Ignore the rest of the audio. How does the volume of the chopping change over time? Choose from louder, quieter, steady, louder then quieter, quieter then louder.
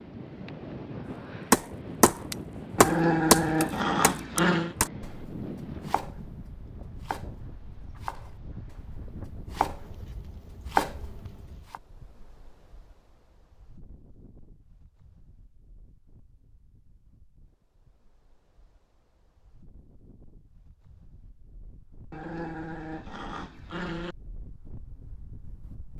quieter then louder.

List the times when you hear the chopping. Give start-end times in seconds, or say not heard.
1.5-11.8.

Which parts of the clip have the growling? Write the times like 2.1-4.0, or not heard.
2.8-4.8, 22.1-24.1.